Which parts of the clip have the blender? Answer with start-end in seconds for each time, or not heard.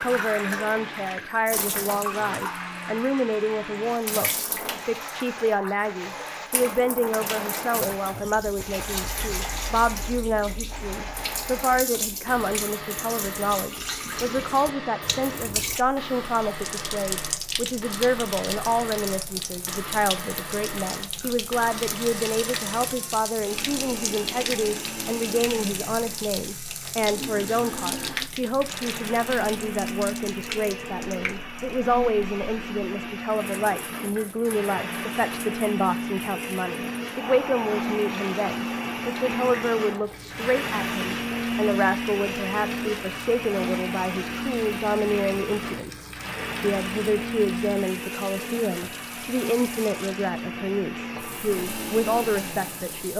0.0-53.1.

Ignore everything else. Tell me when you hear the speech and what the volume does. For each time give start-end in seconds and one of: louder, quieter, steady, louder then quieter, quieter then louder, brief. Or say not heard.
0.0-53.1 steady.